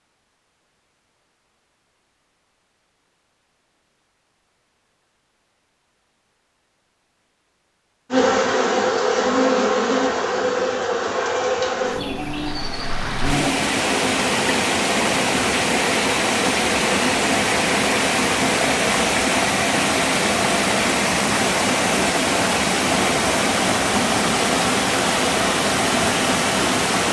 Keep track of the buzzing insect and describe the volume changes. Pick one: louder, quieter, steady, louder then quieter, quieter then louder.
quieter.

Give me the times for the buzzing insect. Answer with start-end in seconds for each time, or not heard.
8.1-18.9.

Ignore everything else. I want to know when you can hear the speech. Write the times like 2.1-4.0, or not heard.
not heard.